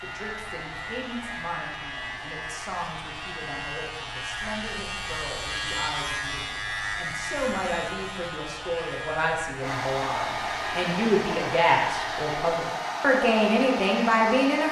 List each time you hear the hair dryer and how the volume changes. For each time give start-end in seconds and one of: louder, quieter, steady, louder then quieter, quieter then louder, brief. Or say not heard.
0.0-14.6 louder.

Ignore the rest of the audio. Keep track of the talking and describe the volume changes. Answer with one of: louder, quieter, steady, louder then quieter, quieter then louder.
louder.